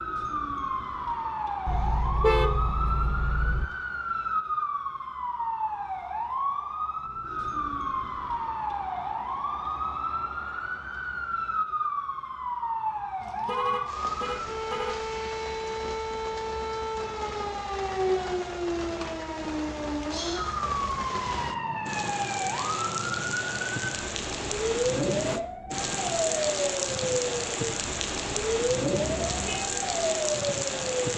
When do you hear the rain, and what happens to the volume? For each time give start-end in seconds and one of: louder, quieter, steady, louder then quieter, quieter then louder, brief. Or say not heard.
13.2-31.1 louder.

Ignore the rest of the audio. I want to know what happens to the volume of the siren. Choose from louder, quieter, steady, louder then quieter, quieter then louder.
steady.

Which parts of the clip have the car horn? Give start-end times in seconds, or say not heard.
1.6-3.6, 12.9-15.0, 29.1-29.7.